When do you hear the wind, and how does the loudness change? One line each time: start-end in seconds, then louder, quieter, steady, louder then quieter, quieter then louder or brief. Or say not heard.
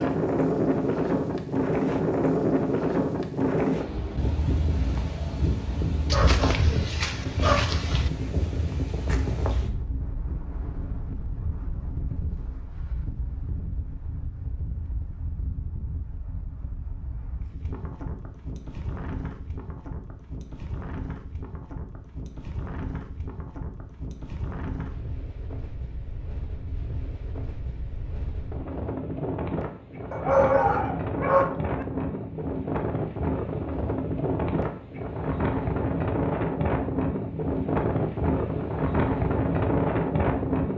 0.0-40.7 quieter then louder.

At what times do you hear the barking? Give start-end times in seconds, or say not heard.
6.1-8.1, 30.1-31.9.